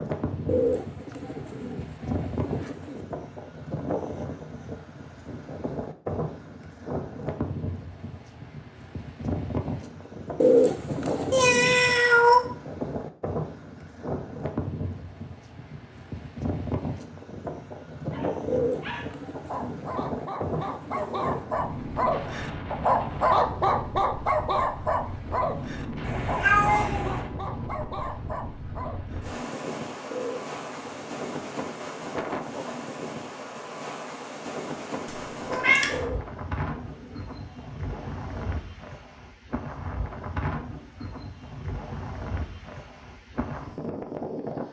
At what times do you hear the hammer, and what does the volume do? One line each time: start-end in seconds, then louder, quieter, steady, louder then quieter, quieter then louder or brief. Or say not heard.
not heard.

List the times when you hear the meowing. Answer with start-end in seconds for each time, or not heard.
11.3-12.4, 26.0-27.2, 35.0-36.0.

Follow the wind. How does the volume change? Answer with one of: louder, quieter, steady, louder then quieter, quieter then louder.
steady.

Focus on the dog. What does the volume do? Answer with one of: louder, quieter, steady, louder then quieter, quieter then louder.
louder then quieter.